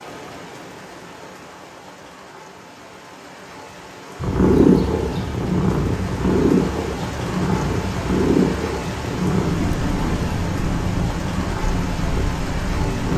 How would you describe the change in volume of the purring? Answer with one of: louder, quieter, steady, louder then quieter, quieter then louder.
quieter.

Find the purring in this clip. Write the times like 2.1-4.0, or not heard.
4.2-13.1.